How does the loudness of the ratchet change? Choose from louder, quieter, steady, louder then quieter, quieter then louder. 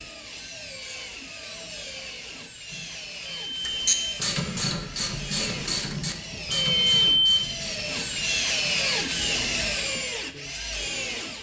quieter.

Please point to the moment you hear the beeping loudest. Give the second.
7 s.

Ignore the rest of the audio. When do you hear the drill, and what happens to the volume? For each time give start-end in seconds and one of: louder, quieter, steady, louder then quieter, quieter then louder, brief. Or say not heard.
0.0-11.3 louder.